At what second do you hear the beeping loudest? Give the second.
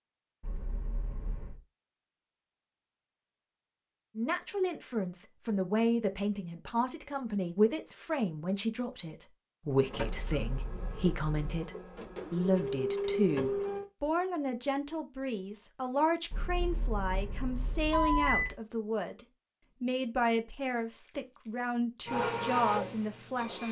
18 s.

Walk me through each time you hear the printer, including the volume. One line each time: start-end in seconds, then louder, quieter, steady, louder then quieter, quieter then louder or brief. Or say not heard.
9.8-13.8 louder
22.1-23.6 brief.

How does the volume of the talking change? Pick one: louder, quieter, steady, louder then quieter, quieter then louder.
steady.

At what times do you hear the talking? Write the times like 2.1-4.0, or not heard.
4.2-23.6.